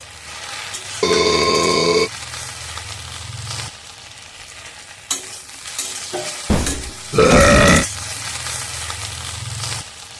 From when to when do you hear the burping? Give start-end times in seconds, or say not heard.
1.0-2.1, 6.5-7.8.